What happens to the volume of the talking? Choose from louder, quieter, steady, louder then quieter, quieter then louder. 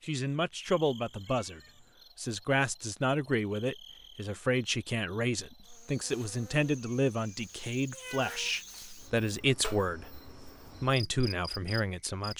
steady.